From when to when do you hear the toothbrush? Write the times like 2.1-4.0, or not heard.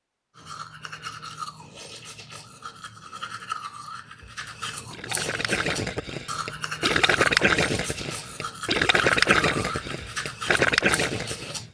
0.3-11.6.